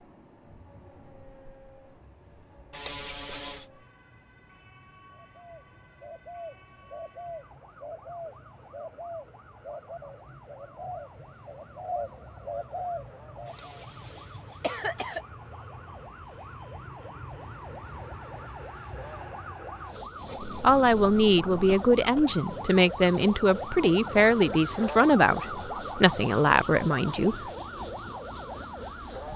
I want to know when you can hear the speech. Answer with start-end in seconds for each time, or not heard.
20.6-27.4.